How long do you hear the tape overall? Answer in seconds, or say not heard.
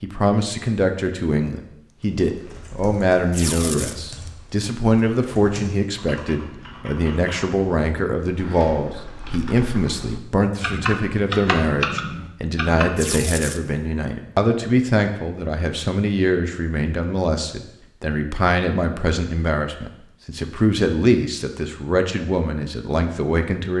2 s.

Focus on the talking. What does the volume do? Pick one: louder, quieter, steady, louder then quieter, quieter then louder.
steady.